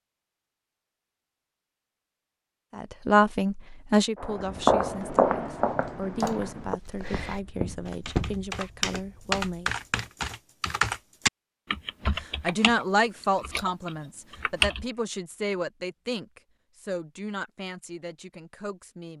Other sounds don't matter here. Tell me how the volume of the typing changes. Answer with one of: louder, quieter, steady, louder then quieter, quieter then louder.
louder then quieter.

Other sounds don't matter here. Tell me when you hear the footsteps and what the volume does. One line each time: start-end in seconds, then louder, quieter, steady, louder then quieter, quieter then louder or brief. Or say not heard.
4.2-10.1 quieter.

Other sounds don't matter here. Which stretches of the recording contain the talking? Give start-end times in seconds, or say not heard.
2.8-9.7, 12.2-19.1.